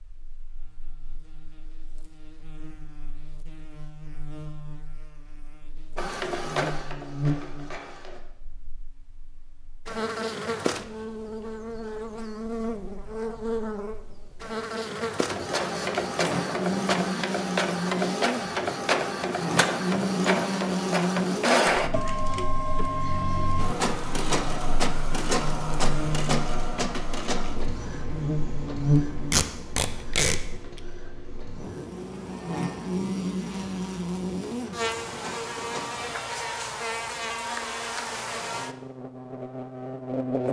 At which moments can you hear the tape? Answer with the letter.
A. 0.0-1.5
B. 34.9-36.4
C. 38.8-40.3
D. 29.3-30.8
D.